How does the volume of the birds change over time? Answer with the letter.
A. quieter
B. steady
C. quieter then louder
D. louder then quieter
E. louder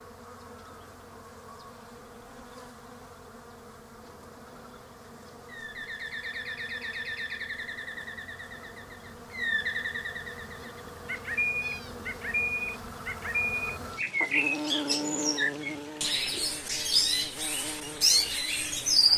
E.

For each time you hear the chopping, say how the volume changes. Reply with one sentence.
You can't hear the chopping here.